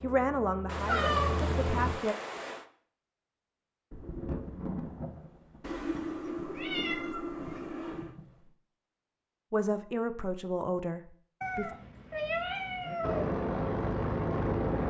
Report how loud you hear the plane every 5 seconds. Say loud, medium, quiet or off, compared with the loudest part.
medium, off, loud.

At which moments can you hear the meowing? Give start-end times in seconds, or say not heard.
0.7-2.6, 5.6-8.2, 11.4-13.2.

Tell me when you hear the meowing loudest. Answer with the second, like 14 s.
1 s.